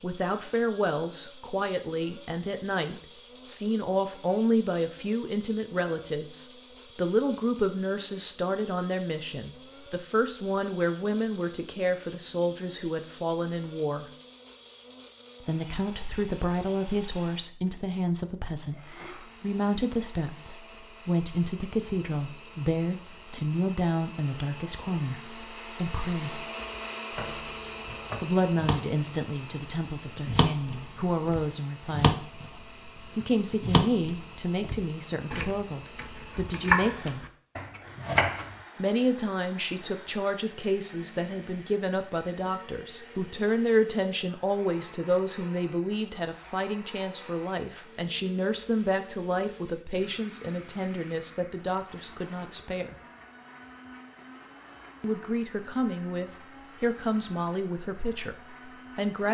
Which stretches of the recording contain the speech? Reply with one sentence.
The speech can be heard from 0.0 to 14.1 s, from 15.4 to 26.4 s, from 28.2 to 32.1 s, from 33.1 to 37.2 s, from 38.8 to 53.0 s and from 55.0 to 59.2 s.